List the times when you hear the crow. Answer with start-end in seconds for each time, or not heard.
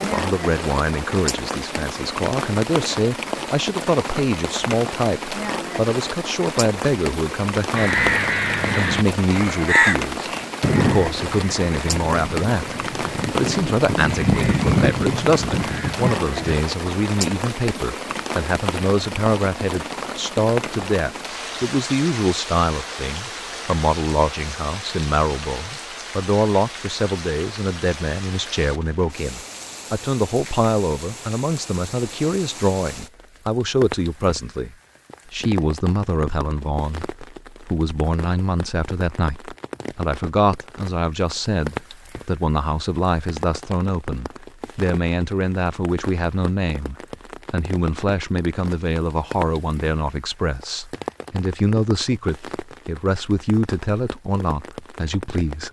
7.8-16.6.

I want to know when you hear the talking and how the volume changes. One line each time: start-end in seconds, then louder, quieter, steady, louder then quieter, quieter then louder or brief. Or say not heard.
0.0-8.2 steady
8.8-55.6 steady.